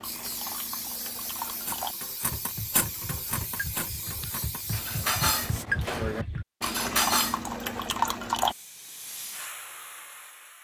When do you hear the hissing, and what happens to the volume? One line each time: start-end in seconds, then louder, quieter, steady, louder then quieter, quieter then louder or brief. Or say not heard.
0.0-5.7 steady
8.4-10.6 brief.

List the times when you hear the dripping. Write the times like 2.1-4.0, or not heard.
0.0-8.6.